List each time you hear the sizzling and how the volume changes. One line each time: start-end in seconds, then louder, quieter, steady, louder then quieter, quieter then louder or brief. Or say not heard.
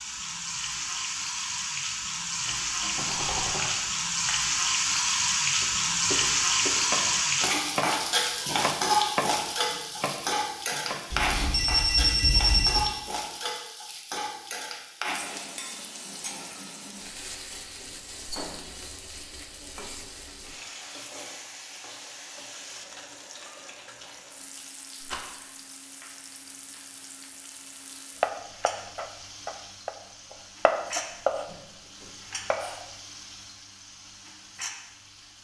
0.0-35.3 quieter.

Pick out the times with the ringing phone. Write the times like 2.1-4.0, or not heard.
11.1-12.9.